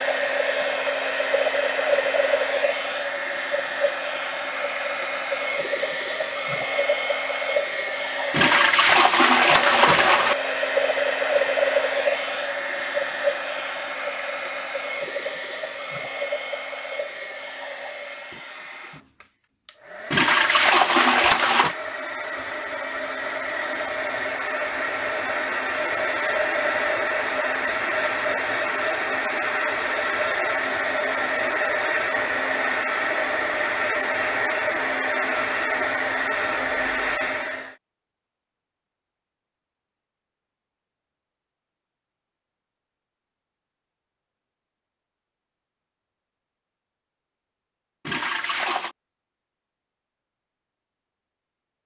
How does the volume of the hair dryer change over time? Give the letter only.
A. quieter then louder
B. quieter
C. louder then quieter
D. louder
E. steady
A.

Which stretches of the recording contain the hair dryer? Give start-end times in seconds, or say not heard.
0.0-37.8.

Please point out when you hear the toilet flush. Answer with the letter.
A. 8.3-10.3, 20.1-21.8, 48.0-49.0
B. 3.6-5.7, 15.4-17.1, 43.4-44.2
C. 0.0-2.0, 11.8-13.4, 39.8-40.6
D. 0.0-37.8
A.